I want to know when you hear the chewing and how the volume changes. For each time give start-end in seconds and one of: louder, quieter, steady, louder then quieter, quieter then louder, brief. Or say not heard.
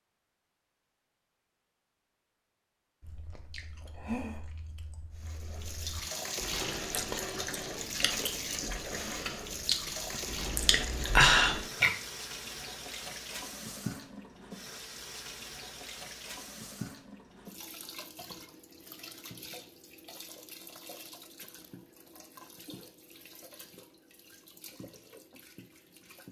3.0-11.9 quieter then louder.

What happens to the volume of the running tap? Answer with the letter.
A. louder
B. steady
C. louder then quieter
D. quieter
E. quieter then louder
D.